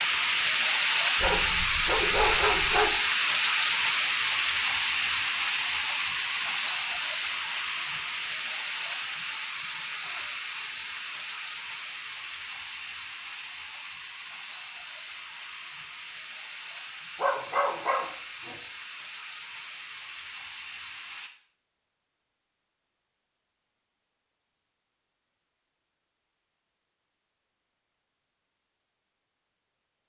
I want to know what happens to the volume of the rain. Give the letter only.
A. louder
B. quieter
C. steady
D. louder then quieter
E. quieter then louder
B.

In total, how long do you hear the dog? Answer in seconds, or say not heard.
3 s.